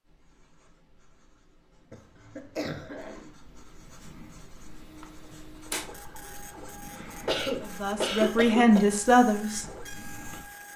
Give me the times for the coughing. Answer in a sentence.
You can hear the coughing from 1.9 to 3.3 s and from 6.9 to 8.8 s.